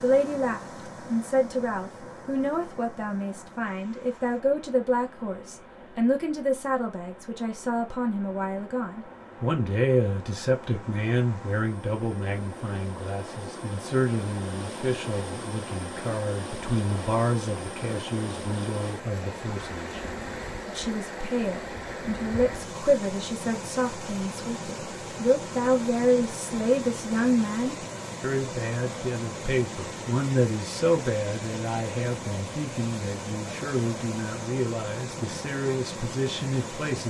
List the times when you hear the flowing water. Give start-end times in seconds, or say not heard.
0.0-37.0.